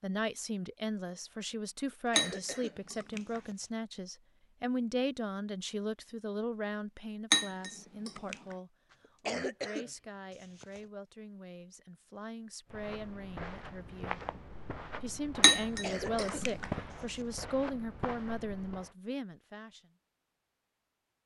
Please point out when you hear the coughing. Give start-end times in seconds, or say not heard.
1.9-3.7, 8.9-10.8, 15.8-17.4.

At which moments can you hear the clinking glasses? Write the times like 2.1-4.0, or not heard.
2.1-3.4, 7.3-8.3, 15.4-16.6.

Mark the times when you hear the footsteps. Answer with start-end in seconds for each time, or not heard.
12.7-18.9.